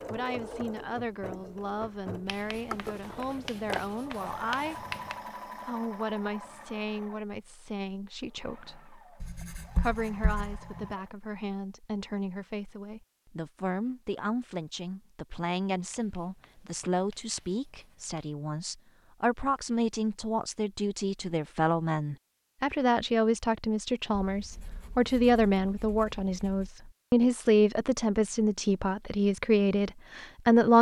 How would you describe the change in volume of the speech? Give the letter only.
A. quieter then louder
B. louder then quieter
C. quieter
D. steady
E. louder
E.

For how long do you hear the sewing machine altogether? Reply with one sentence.
The sewing machine can be heard for 11 seconds in total.